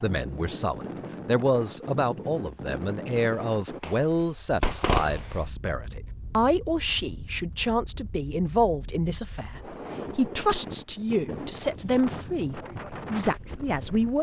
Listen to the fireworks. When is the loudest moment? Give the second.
5 s.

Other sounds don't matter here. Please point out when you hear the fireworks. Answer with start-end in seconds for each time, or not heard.
3.1-5.3.